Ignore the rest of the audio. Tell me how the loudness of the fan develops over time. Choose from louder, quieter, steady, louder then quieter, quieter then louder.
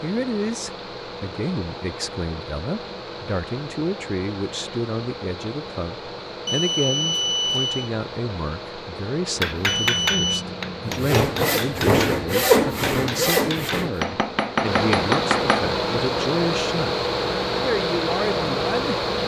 louder.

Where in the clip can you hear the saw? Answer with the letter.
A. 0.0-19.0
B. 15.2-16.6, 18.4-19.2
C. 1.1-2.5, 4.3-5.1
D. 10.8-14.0
D.